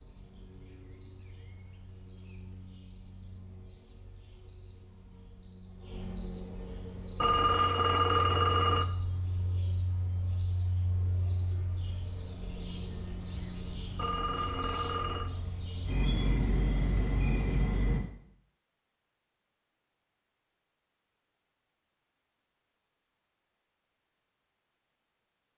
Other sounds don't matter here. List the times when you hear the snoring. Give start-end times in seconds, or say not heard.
not heard.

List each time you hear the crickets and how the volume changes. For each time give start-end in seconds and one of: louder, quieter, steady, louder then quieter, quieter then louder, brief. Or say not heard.
0.0-18.0 louder.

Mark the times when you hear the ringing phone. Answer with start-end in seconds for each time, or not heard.
7.2-8.8, 13.9-15.3.